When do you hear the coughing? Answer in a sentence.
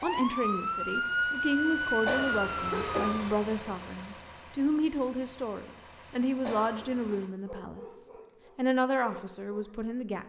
You can hear the coughing from 2.0 to 3.1 s and from 6.4 to 7.2 s.